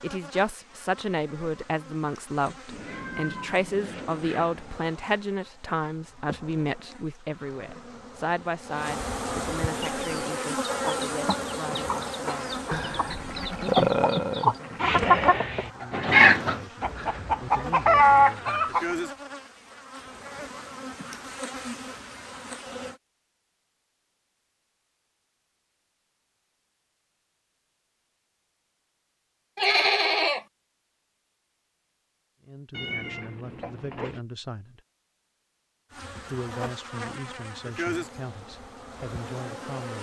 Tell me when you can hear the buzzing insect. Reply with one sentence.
You can hear the buzzing insect from 0.0 to 23.0 s and from 35.9 to 39.9 s.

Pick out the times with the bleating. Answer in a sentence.
You can hear the bleating from 12.7 to 15.3 s and from 29.6 to 30.4 s.